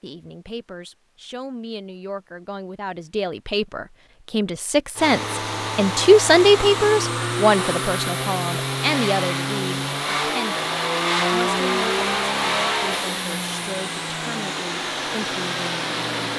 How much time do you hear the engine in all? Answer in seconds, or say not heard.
11 s.